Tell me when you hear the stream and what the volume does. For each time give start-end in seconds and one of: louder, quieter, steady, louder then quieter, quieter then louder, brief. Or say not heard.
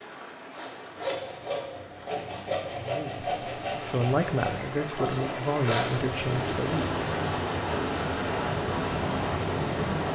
0.0-10.1 louder.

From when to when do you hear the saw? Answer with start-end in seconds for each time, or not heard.
0.6-6.0.